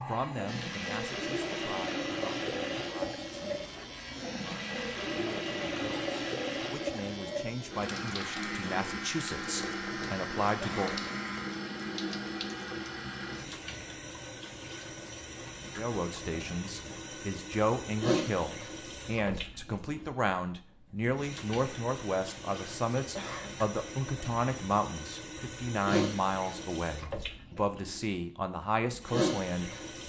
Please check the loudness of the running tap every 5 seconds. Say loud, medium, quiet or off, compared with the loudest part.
loud, loud, loud, loud, medium, loud.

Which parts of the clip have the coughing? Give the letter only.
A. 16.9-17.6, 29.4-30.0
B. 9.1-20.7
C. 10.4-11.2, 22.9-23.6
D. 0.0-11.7
C.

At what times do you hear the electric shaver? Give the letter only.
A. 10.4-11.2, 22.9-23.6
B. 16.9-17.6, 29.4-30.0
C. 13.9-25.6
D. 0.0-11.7
D.